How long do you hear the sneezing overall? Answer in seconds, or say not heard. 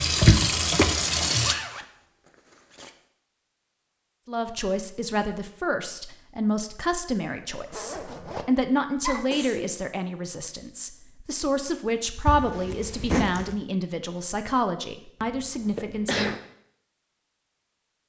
3 s.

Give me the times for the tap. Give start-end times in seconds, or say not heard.
0.0-1.6.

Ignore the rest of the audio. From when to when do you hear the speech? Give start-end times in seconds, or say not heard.
4.2-16.4.